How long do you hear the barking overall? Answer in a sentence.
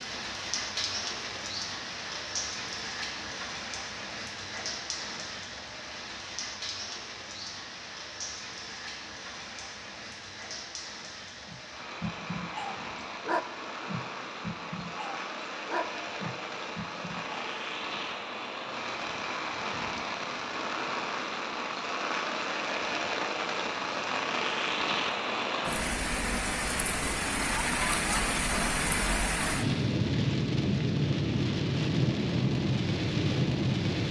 You can hear the barking for 6 seconds altogether.